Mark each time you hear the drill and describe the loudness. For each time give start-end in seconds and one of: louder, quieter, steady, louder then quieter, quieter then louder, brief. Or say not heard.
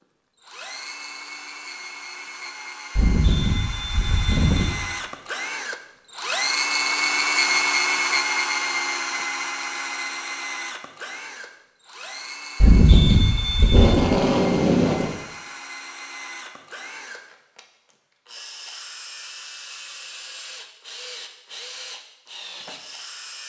0.3-23.4 louder then quieter.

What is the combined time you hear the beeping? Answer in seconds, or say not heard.
3 s.